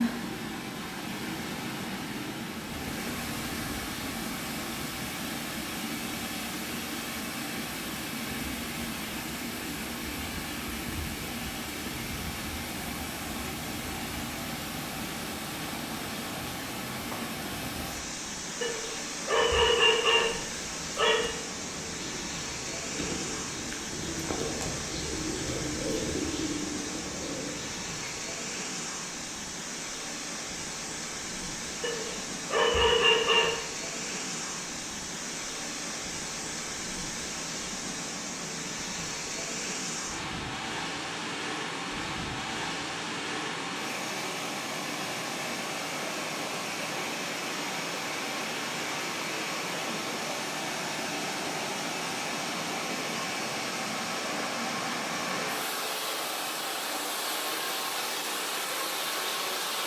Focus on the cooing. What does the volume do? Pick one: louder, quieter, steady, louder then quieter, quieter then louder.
louder then quieter.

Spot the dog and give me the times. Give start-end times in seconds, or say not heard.
18.6-21.4, 31.8-33.6.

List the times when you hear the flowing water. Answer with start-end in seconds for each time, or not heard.
0.0-59.8.